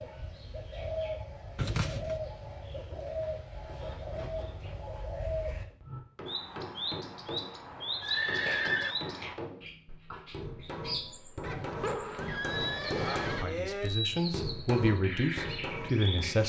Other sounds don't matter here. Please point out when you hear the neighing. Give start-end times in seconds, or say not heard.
1.6-2.2, 8.0-8.9, 11.4-13.4.